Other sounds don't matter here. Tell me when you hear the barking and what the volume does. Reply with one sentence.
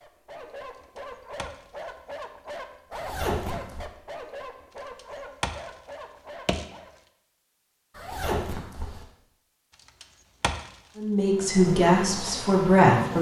The barking can be heard from 0.0 to 6.9 s, at a steady volume.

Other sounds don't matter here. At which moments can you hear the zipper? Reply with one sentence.
The zipper can be heard from 2.9 to 3.9 s and from 8.0 to 9.1 s.